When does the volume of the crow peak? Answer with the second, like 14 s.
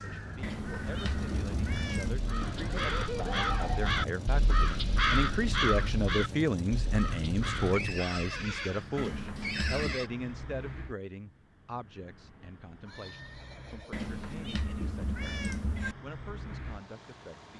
5 s.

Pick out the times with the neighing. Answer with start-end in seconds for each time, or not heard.
2.4-4.0, 7.7-10.1, 12.8-14.3.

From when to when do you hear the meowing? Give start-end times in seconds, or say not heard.
0.4-2.2, 8.9-10.0, 13.9-15.9.